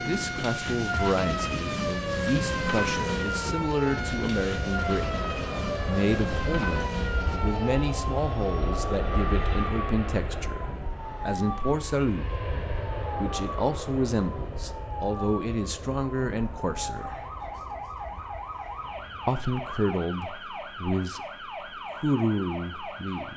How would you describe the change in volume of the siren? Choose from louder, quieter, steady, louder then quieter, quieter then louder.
quieter.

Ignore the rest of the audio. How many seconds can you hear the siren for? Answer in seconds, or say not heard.
23 s.